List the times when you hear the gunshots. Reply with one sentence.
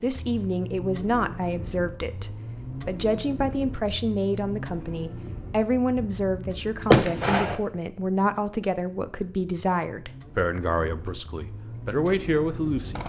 You can hear the gunshots from 6.0 to 7.5 s.